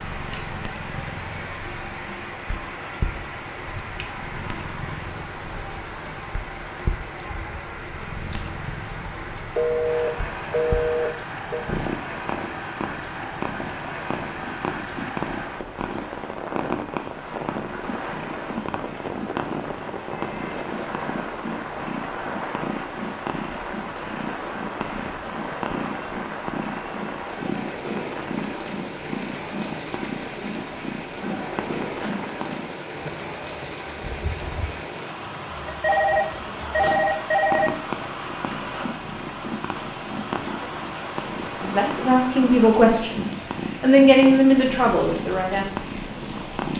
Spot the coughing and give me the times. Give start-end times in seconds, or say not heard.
not heard.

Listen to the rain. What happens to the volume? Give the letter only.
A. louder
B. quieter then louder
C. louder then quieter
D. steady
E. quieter
D.